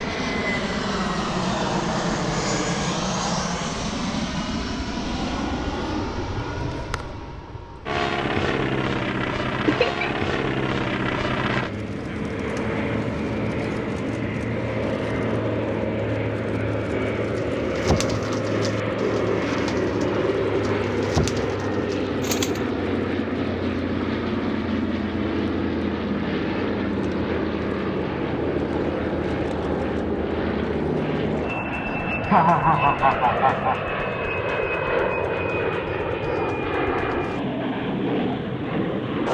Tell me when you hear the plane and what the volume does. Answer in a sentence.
You can hear the plane from 0.0 to 39.2 s, at a steady volume.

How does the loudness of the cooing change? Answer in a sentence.
The volume of the cooing goes down.